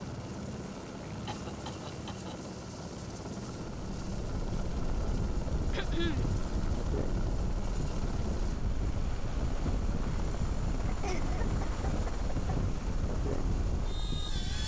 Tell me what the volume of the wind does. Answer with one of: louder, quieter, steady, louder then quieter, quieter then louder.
steady.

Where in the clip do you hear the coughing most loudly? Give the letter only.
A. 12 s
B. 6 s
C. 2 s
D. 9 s
B.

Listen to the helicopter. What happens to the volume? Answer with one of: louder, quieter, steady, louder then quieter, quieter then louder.
steady.